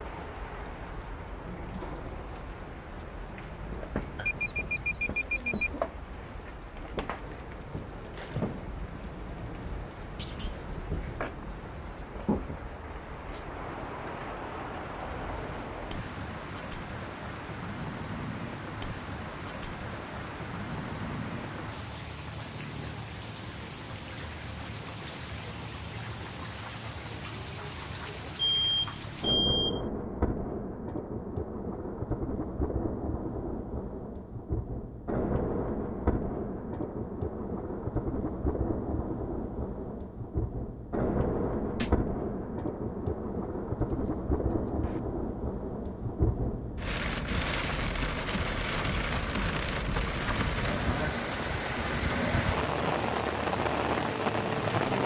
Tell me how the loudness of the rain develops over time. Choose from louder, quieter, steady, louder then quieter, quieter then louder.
louder.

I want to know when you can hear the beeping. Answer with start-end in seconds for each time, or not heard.
4.2-5.7, 28.4-29.9, 43.9-45.0.